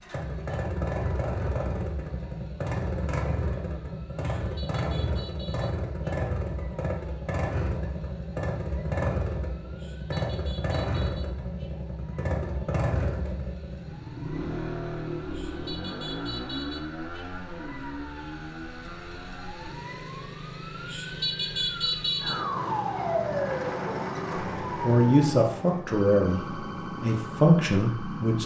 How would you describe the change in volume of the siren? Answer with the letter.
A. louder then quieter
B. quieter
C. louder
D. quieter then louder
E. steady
C.